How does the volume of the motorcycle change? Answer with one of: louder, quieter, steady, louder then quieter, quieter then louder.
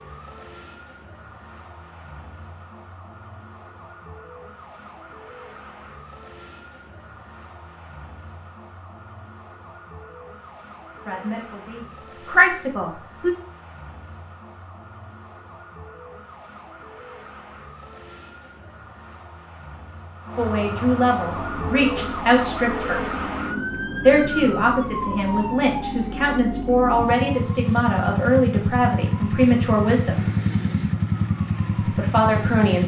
louder.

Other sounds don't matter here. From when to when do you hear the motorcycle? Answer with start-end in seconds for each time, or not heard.
21.3-32.8.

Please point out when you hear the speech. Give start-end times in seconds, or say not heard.
11.1-13.3, 20.4-23.0, 24.0-30.2, 31.9-32.8.